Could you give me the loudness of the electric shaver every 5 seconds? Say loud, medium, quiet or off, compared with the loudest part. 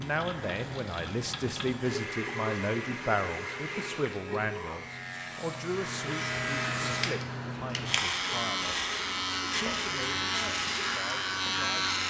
quiet, loud, loud.